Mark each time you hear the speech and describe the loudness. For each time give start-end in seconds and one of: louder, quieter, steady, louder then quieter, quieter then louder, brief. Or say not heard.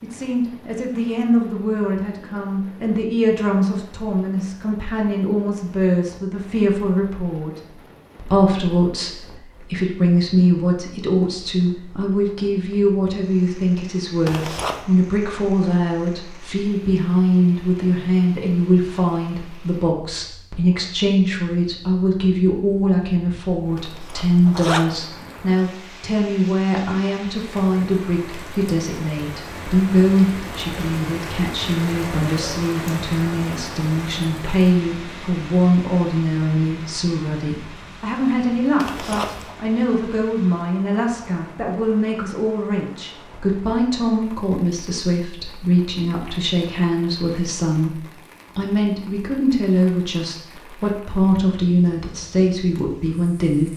0.0-53.7 steady.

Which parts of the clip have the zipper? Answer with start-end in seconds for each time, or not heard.
14.2-14.8, 23.8-24.9, 38.8-39.5.